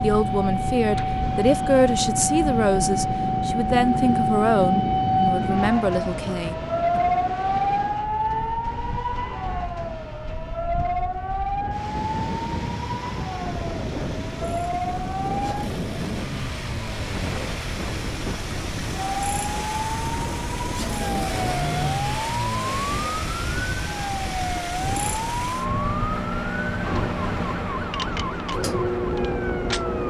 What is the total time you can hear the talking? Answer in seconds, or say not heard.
7 s.